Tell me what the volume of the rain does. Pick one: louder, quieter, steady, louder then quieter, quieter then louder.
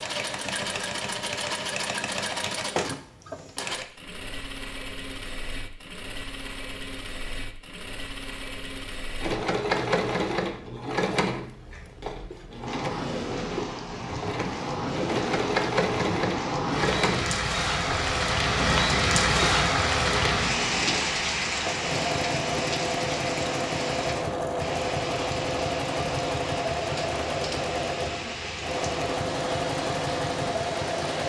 louder then quieter.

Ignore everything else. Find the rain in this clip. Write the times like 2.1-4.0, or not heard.
12.7-31.2.